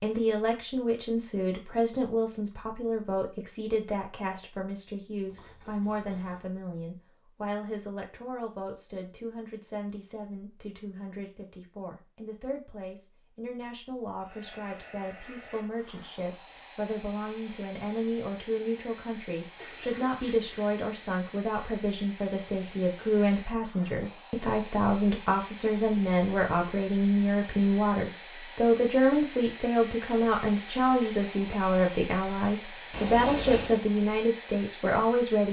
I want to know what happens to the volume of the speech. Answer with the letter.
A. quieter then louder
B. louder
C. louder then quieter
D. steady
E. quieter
A.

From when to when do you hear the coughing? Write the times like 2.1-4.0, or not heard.
not heard.